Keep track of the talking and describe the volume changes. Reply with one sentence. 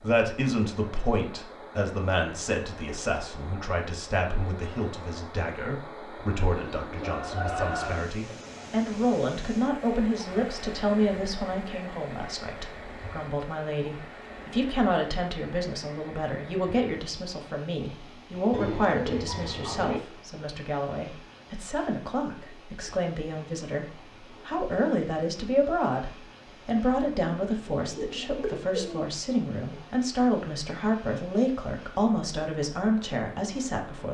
The loudness of the talking stays about the same.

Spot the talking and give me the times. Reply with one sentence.
The talking can be heard from 0.0 to 34.1 s.